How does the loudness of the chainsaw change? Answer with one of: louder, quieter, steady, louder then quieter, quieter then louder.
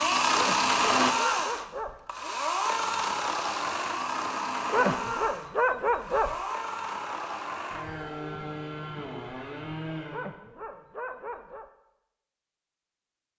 quieter.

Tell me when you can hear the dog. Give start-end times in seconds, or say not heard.
0.3-2.0, 4.7-6.4, 10.1-11.7.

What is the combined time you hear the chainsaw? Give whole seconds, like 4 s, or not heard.
10 s.